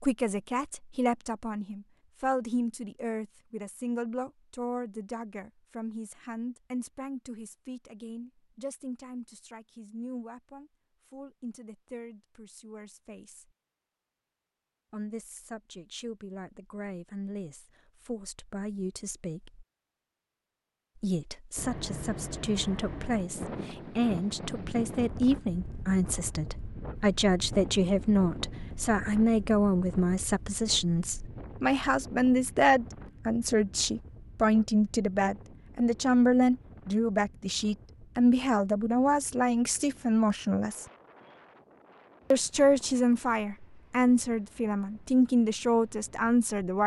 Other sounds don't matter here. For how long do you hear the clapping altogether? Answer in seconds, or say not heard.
not heard.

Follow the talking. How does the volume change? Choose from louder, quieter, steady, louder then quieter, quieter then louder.
quieter then louder.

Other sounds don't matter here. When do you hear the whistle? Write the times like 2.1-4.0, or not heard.
not heard.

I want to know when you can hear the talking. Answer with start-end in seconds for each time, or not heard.
0.0-13.5, 14.9-19.6, 20.9-40.9, 42.3-46.8.